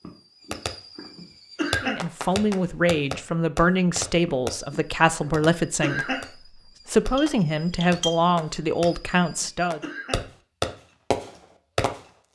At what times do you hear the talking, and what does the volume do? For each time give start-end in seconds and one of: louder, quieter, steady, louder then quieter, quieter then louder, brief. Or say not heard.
1.8-9.8 steady.